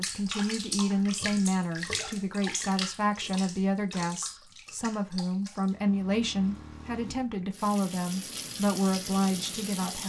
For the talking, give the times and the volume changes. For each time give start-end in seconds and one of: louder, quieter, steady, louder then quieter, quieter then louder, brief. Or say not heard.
0.0-10.0 steady.